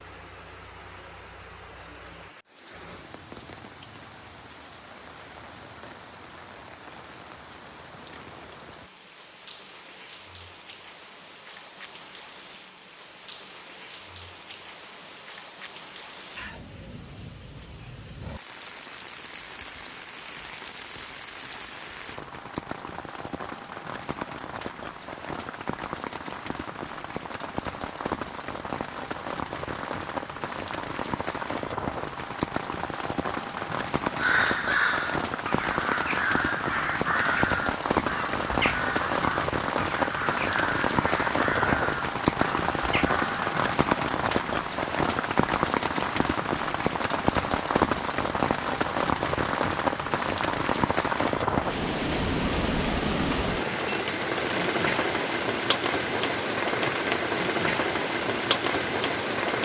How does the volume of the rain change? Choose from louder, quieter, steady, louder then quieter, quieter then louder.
louder.